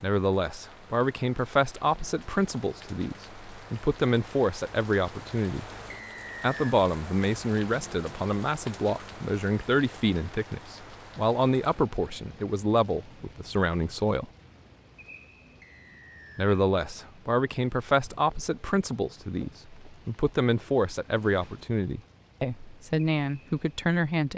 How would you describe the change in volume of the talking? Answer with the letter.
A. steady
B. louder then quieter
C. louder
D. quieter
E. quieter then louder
A.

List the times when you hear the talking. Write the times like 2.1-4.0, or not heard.
0.0-5.7, 6.4-14.2, 16.4-24.3.